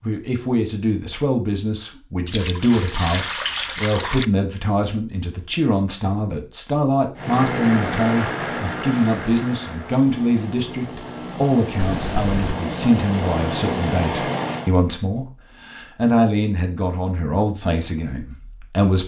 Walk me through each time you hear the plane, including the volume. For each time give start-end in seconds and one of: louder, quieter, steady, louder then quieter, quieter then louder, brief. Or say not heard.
7.2-14.8 quieter then louder.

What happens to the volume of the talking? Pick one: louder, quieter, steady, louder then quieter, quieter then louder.
steady.